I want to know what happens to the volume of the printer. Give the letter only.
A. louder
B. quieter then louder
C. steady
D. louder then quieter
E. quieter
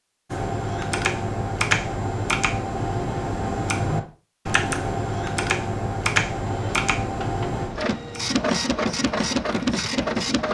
A.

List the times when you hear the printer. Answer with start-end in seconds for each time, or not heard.
6.3-10.4.